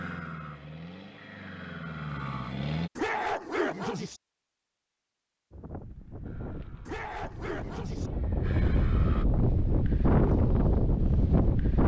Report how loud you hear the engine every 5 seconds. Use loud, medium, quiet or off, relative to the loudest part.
loud, medium, off.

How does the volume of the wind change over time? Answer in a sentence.
The loudness of the wind goes up.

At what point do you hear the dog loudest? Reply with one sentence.
The loudest moment of the dog is at 3 seconds.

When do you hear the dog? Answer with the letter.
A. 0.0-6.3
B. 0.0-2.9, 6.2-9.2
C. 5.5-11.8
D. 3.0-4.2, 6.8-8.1
D.